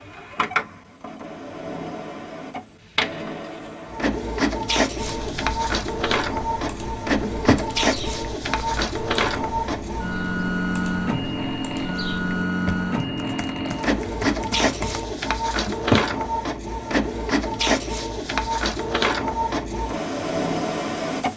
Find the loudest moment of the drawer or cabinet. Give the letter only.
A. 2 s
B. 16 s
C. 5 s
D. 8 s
B.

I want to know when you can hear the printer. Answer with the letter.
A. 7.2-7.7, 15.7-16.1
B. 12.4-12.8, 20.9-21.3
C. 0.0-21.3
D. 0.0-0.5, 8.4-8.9
C.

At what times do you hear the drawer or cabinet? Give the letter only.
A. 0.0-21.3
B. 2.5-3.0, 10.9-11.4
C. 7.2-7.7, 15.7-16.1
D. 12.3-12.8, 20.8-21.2
C.